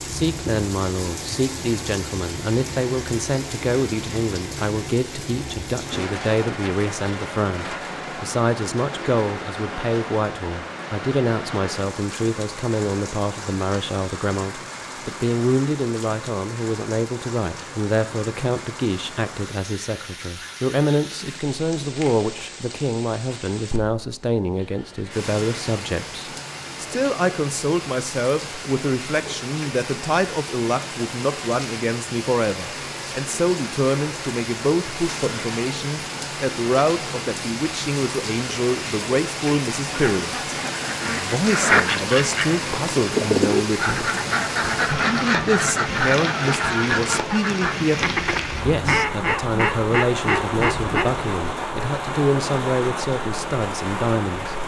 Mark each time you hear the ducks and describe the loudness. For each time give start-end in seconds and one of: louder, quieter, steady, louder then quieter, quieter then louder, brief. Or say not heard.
39.8-51.2 steady.